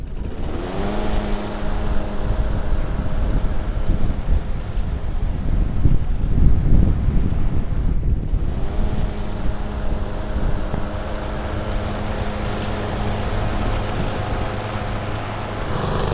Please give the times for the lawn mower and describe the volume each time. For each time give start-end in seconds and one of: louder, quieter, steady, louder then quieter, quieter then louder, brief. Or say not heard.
0.0-16.0 quieter then louder.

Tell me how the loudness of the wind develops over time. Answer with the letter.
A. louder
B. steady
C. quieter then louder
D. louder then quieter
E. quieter
D.